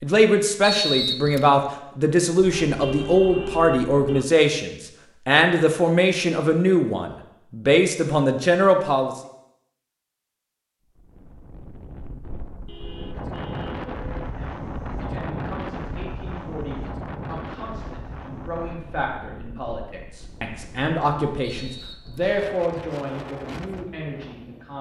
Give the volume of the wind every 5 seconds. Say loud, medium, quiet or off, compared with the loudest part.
off, off, loud, loud, medium.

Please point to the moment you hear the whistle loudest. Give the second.
1 s.